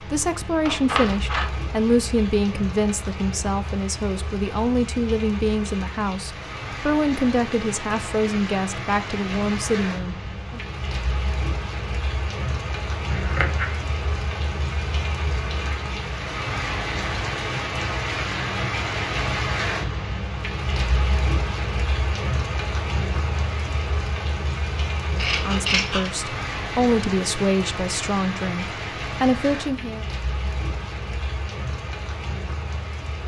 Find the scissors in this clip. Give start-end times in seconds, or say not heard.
0.7-1.4, 13.1-13.8, 25.1-26.1.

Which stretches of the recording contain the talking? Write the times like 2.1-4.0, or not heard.
0.0-10.6, 25.1-30.1.